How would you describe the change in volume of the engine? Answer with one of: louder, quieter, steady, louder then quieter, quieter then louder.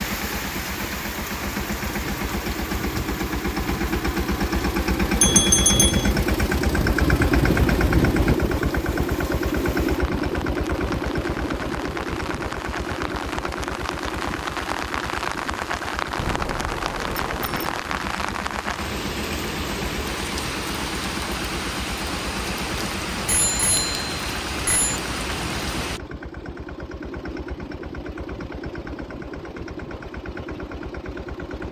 quieter.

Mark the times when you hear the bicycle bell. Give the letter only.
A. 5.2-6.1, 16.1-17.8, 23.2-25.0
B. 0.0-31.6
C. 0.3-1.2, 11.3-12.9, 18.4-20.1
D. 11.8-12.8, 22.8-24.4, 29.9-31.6
A.